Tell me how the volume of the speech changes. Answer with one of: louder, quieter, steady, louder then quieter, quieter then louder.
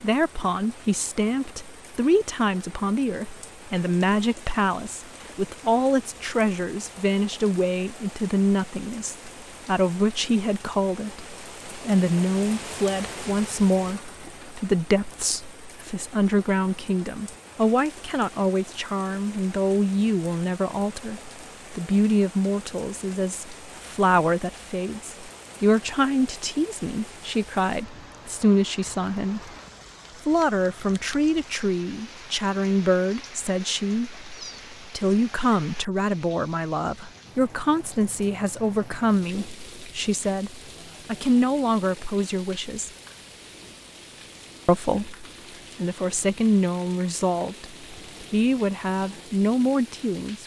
steady.